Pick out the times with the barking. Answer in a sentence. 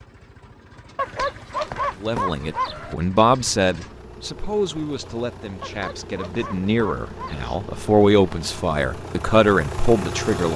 You can hear the barking from 0.9 to 3.0 s and from 5.6 to 7.5 s.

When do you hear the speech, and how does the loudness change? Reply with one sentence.
You can hear the speech from 2.0 to 10.5 s, getting quieter then louder.